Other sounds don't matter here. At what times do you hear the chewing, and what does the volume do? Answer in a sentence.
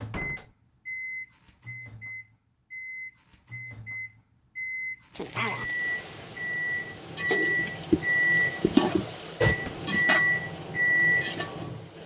The chewing can't be heard in this clip.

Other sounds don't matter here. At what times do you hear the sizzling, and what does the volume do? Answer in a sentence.
You can hear the sizzling from 5.1 to 12.0 s, getting louder then quieter.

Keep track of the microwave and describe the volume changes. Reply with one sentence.
The loudness of the microwave goes up.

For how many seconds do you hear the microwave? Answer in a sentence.
The microwave can be heard for 12 seconds in total.